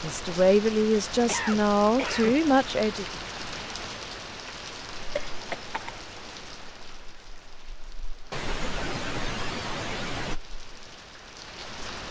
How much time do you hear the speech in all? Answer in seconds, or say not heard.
3 s.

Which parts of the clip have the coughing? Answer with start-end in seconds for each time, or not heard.
1.2-2.4, 5.2-6.1, 8.3-10.4.